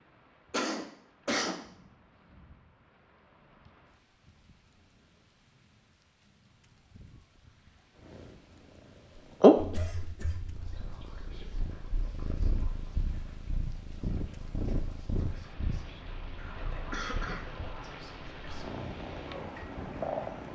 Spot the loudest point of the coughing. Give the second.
1 s.